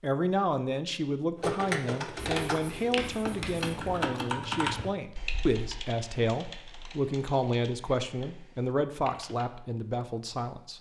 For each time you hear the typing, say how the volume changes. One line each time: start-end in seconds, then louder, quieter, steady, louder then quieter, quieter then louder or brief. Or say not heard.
1.4-9.4 quieter.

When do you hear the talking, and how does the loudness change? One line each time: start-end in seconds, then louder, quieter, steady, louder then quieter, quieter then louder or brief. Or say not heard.
0.0-10.7 steady.